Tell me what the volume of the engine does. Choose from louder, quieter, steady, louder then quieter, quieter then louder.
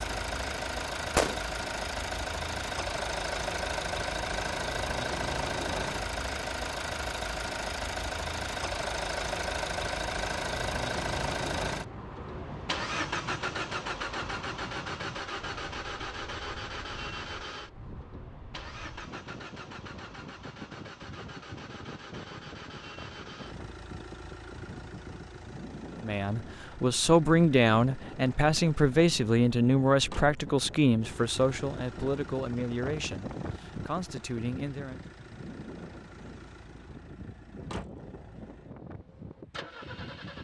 quieter.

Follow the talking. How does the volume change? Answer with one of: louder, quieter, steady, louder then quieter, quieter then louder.
quieter.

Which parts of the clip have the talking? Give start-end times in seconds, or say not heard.
25.9-35.0.